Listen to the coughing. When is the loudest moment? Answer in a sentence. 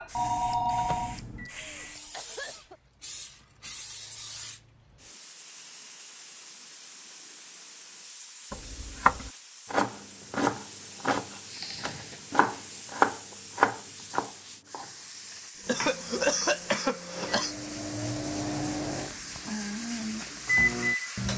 The volume of the coughing peaks at 16 seconds.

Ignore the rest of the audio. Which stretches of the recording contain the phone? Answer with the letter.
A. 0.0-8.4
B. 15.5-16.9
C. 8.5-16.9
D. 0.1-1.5
D.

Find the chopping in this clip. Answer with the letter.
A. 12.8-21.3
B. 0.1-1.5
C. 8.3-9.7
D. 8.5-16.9
D.